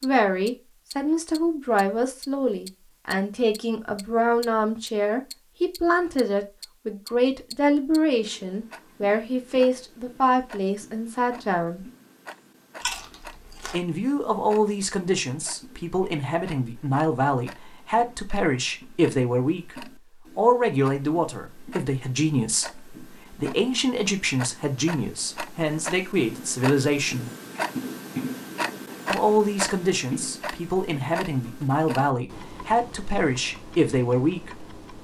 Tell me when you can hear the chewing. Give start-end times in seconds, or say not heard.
12.8-13.8.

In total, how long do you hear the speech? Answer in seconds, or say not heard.
31 s.